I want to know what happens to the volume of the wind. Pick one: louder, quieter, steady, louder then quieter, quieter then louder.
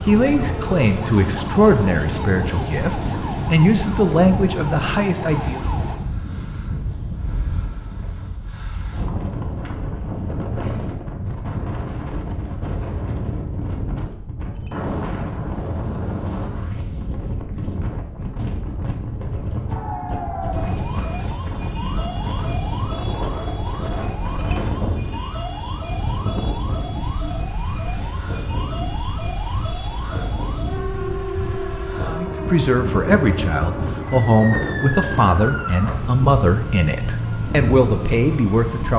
steady.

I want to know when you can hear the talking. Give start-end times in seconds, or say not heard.
0.0-5.7, 32.0-38.9.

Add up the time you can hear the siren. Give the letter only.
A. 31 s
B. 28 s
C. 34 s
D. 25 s
D.